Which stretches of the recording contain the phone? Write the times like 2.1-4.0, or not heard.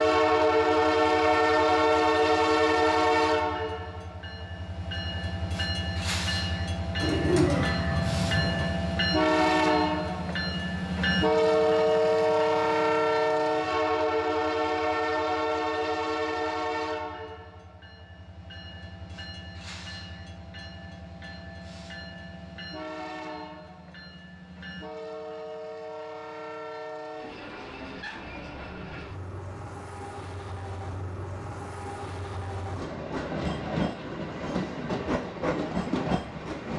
not heard.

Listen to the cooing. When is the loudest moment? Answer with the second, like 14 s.
7 s.